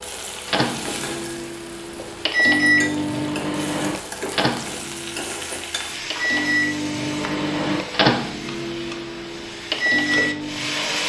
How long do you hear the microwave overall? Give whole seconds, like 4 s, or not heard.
11 s.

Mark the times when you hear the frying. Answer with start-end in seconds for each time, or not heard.
0.0-11.0.